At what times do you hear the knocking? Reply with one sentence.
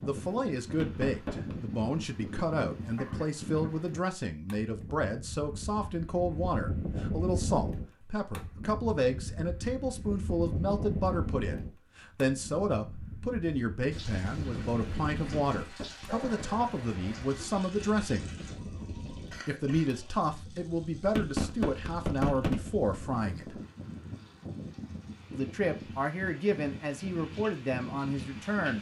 The knocking can be heard from 0.7 to 1.6 s, from 15.3 to 16.6 s and from 21.1 to 22.7 s.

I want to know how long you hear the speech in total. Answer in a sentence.
The speech can be heard for 26 seconds in total.